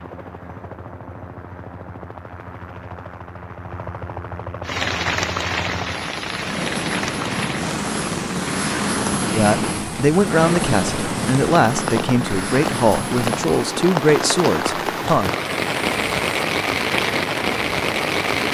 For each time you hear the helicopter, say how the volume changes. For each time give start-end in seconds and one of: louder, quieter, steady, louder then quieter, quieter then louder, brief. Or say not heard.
0.0-18.3 louder then quieter.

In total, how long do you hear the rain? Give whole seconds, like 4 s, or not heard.
14 s.